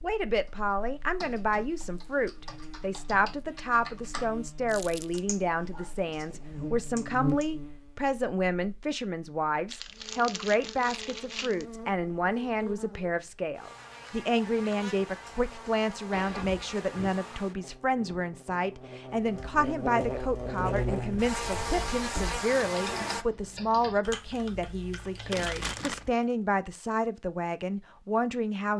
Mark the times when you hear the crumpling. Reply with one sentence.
The crumpling can be heard from 4.7 to 5.2 s, from 9.7 to 11.7 s and from 25.3 to 26.1 s.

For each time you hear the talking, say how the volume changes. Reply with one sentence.
You can hear the talking from 0.0 to 28.7 s, at a steady volume.